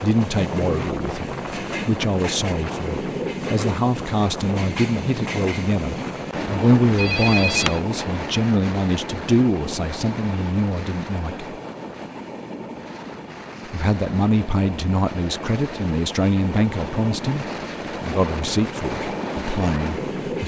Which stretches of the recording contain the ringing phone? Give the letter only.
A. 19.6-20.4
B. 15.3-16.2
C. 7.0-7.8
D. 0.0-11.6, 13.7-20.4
C.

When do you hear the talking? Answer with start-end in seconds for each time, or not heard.
0.0-11.6, 13.7-20.4.